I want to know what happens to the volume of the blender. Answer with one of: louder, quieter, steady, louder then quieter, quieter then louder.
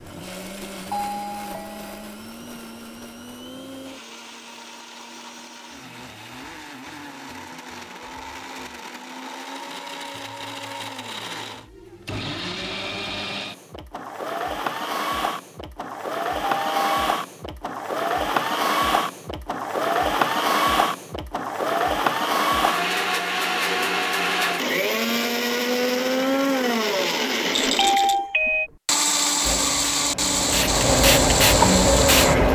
louder.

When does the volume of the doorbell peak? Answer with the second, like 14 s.
28 s.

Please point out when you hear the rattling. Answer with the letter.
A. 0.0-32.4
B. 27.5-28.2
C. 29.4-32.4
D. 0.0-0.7
B.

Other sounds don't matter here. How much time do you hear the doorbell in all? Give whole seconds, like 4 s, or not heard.
3 s.